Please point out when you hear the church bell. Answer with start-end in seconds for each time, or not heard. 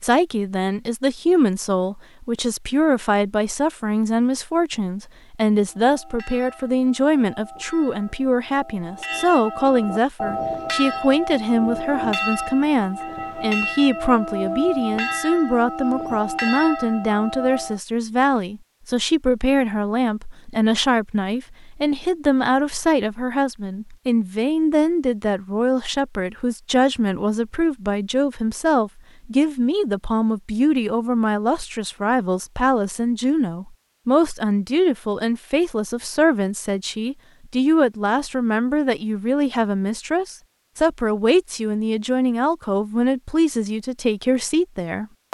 5.7-17.8.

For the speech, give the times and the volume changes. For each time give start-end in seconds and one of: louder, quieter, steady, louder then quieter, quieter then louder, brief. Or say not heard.
0.0-45.2 steady.